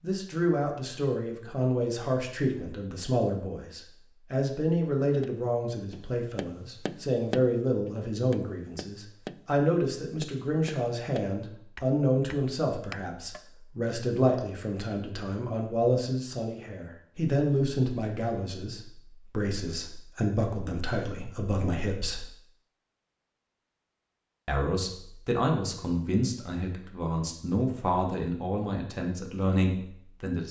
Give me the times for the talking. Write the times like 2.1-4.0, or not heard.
0.0-22.2, 24.4-30.4.